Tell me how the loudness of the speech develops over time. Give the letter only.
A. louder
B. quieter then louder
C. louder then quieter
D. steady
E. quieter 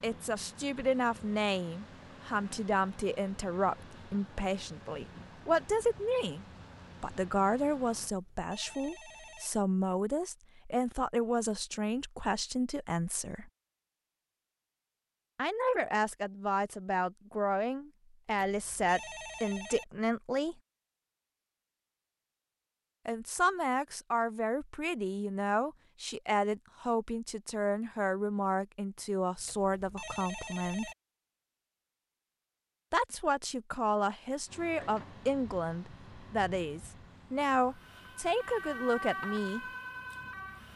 D.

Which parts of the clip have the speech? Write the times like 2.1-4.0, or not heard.
0.0-13.5, 15.3-20.6, 23.1-30.9, 32.9-39.6.